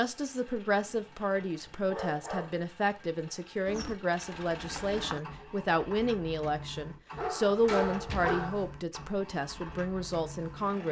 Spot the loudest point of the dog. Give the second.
8 s.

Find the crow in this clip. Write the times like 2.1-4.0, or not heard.
3.6-5.2.